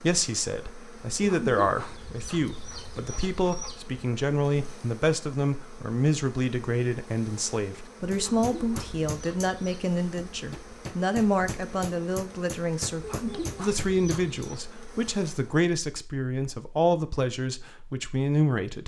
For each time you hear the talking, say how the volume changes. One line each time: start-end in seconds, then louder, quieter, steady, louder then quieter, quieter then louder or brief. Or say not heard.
0.0-18.8 steady.